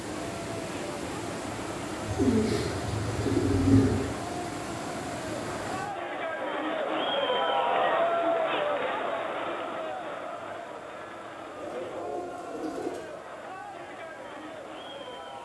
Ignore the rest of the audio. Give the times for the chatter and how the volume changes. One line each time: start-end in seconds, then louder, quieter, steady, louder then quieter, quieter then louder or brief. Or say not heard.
0.0-15.3 louder then quieter.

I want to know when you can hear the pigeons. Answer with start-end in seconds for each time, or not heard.
2.0-4.0, 11.6-13.1.